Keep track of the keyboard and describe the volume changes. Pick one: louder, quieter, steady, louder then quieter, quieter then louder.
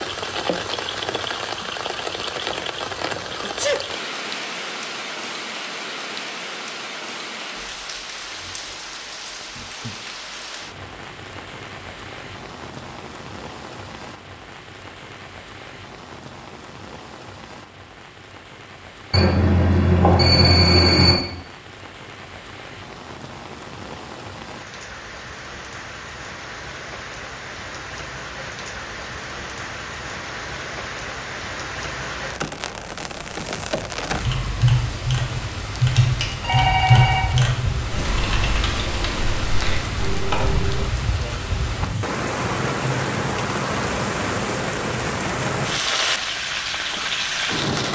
quieter.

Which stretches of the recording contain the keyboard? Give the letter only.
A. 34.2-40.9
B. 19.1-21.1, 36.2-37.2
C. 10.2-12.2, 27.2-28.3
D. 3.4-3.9
A.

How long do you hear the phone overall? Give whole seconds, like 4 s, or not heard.
3 s.